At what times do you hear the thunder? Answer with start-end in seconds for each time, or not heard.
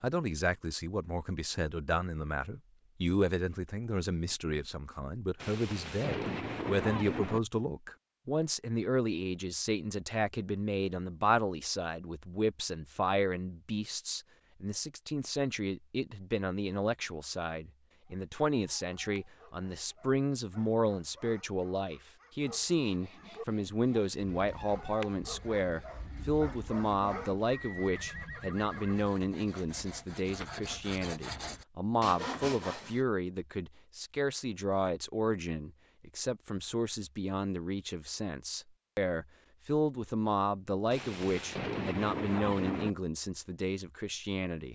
5.3-7.4, 40.9-42.9.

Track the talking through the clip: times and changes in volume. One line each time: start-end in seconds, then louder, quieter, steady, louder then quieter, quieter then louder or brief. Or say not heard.
0.0-44.7 steady.